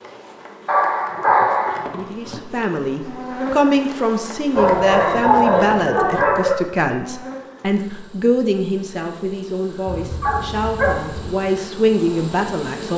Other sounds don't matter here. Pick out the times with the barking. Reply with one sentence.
You can hear the barking from 0.7 to 1.9 s, from 4.5 to 6.5 s and from 9.8 to 11.3 s.